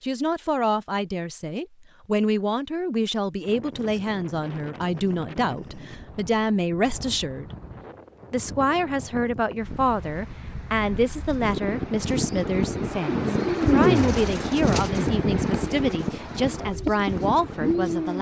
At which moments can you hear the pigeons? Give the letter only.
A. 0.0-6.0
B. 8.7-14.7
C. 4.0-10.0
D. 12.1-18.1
D.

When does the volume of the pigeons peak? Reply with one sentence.
The loudest moment of the pigeons is at 14 seconds.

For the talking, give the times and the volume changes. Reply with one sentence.
The talking can be heard from 0.0 to 7.5 s, at a steady volume; and from 8.3 to 18.1 s, at a steady volume.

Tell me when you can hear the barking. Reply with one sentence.
You can't hear the barking here.